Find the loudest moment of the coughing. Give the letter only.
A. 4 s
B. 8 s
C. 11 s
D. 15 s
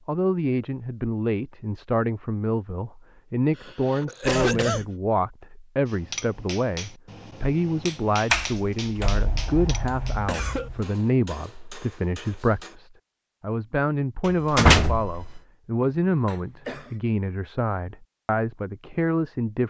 A.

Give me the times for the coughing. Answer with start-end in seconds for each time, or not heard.
3.5-4.8, 10.2-10.7, 16.1-16.9.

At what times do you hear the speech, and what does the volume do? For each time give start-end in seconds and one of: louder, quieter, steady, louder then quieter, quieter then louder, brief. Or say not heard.
0.1-19.6 steady.